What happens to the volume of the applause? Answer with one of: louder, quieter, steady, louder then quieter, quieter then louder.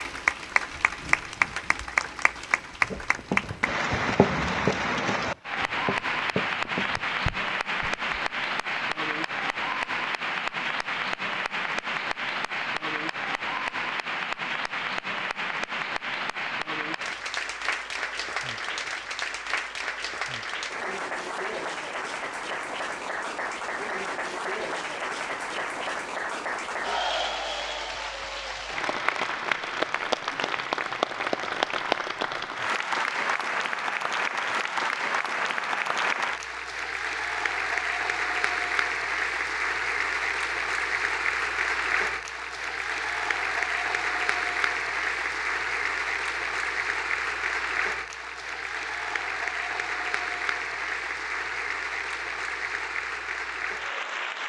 steady.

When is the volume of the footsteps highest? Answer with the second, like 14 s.
4 s.